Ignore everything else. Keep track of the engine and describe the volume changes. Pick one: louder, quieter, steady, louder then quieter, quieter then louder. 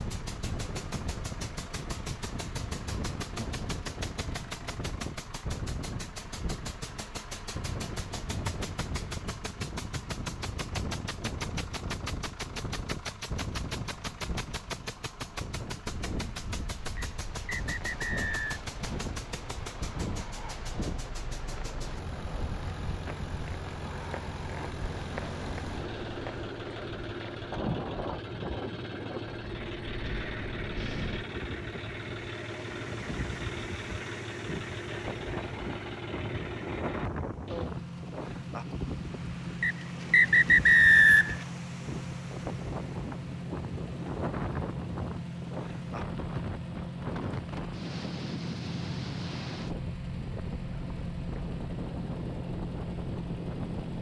steady.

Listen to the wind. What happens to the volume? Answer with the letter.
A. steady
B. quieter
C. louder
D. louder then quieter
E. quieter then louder
A.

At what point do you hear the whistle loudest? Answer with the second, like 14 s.
41 s.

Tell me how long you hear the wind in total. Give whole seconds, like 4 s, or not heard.
54 s.